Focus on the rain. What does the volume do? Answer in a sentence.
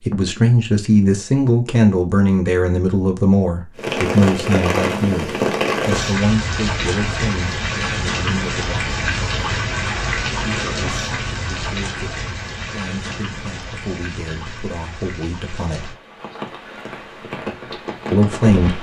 The loudness of the rain goes down.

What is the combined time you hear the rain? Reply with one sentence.
You can hear the rain for 15 seconds altogether.